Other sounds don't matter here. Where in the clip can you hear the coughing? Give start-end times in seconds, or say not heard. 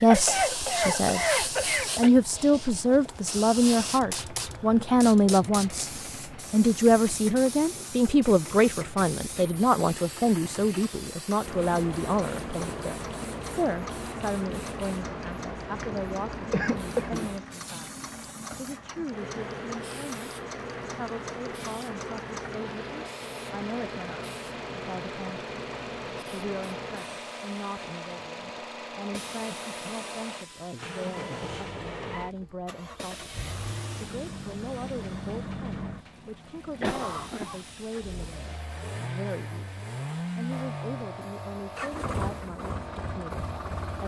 0.1-2.1, 15.9-17.6, 36.8-37.5.